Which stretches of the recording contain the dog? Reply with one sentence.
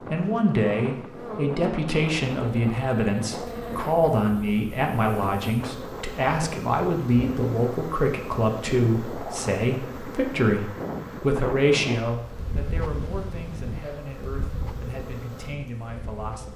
You can't hear the dog here.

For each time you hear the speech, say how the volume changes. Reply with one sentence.
You can hear the speech from 0.1 to 16.5 s, getting quieter.